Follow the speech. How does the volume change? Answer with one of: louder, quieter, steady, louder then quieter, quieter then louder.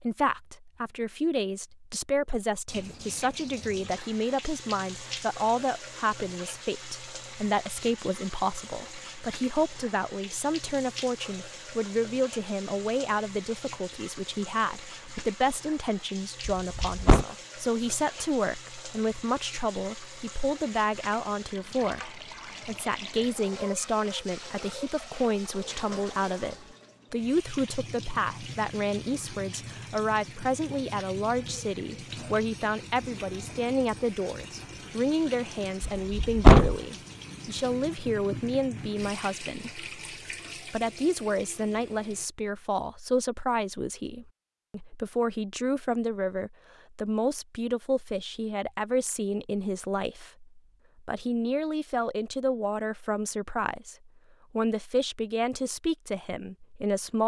steady.